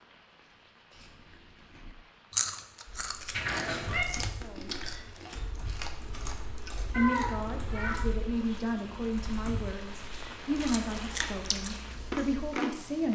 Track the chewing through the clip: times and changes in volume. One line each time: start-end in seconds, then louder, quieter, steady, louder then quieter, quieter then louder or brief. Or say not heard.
0.9-7.5 quieter
10.5-13.1 brief.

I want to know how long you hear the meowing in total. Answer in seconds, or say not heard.
2 s.